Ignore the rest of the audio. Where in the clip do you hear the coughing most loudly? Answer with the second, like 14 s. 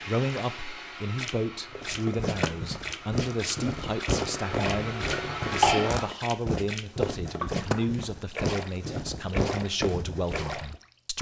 6 s.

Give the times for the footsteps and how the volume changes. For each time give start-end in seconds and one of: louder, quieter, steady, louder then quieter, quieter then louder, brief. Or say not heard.
1.7-10.8 steady.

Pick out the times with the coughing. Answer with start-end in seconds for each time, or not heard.
4.2-6.2.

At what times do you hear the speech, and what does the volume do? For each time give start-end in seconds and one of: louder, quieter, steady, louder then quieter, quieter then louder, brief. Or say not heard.
0.1-11.1 steady.